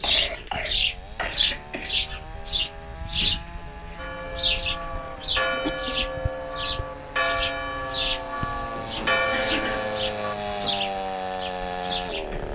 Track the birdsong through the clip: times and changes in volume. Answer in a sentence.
You can hear the birdsong from 0.0 to 12.4 s, getting quieter.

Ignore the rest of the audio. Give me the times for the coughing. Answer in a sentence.
You can hear the coughing from 0.0 to 2.0 s, from 5.4 to 6.0 s and from 8.8 to 10.7 s.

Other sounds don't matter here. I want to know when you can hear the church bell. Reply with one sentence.
The church bell can be heard from 4.0 to 10.3 s.